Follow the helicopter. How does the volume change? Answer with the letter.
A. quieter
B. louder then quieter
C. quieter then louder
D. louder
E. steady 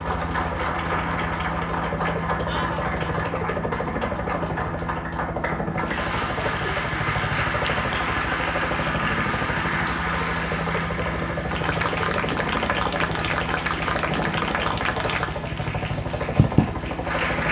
E.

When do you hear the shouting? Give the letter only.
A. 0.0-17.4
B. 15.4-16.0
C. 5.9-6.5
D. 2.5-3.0
D.